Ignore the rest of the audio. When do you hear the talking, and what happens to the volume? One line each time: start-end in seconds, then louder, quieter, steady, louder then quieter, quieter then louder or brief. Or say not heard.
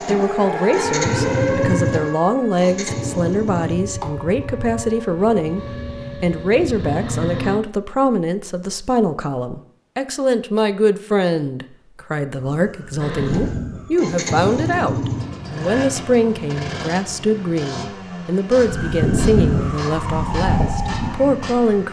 0.1-21.8 steady.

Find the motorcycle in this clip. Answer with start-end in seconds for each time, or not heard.
0.0-7.6, 13.0-21.8.